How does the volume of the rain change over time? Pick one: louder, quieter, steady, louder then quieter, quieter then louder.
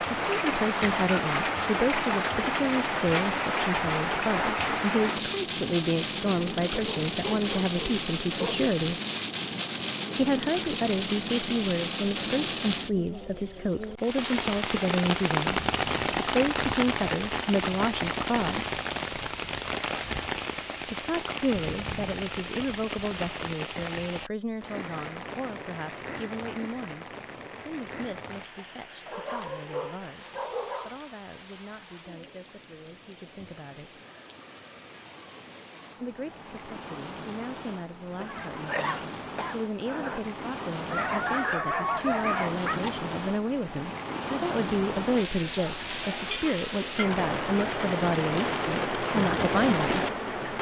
quieter then louder.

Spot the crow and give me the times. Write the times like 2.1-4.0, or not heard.
not heard.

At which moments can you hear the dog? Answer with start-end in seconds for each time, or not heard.
6.7-8.7, 29.1-31.0, 40.9-42.9.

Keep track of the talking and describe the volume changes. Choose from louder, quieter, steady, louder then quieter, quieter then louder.
quieter then louder.